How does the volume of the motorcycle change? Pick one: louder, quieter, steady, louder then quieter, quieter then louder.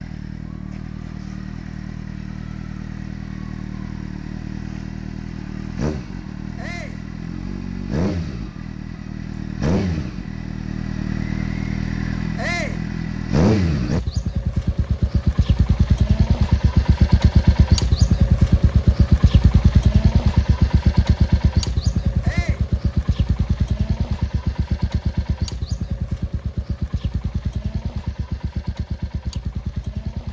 louder then quieter.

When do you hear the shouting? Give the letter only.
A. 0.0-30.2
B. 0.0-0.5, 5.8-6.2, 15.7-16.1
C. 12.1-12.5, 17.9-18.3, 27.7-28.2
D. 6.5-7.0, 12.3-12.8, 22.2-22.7
D.